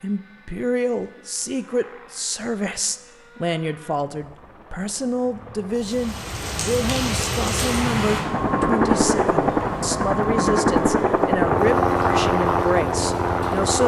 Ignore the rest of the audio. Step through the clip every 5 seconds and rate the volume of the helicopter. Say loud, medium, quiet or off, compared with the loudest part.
quiet, loud, loud.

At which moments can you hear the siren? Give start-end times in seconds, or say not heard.
not heard.